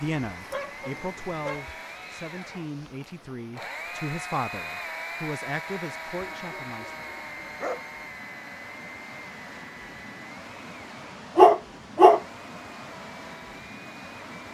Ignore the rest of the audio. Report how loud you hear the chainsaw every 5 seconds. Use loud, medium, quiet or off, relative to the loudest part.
loud, loud, medium.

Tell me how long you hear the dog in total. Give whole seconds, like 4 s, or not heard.
4 s.